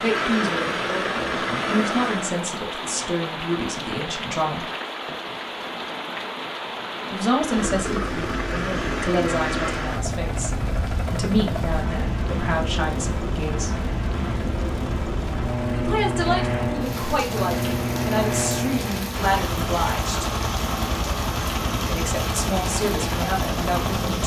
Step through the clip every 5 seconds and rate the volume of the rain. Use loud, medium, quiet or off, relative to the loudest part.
loud, loud, medium, loud, loud.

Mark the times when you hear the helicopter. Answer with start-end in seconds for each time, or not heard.
0.0-2.4, 7.3-24.2.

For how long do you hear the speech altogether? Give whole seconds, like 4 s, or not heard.
18 s.